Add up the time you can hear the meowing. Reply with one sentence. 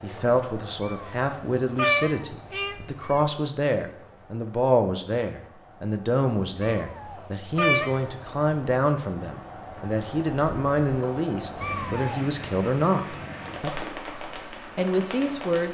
You can hear the meowing for 5 seconds altogether.